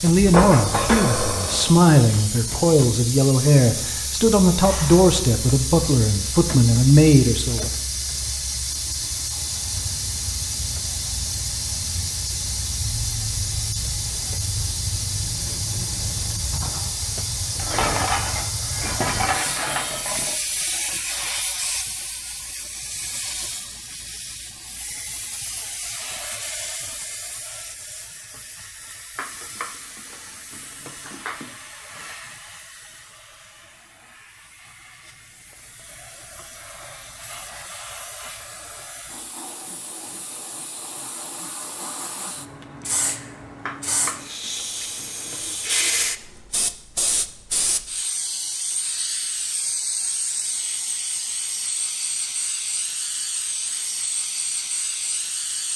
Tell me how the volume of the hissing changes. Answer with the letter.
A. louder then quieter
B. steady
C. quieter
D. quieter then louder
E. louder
D.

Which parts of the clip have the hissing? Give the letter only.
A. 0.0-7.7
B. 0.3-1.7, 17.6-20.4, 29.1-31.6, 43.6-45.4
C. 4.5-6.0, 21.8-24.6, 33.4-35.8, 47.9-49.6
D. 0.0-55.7
D.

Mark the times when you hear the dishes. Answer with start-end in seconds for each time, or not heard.
0.3-1.7, 17.6-20.4, 29.1-31.6, 43.6-45.4.